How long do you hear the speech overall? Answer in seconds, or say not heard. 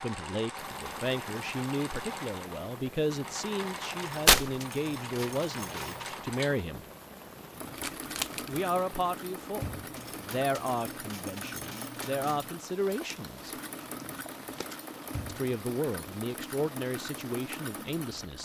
15 s.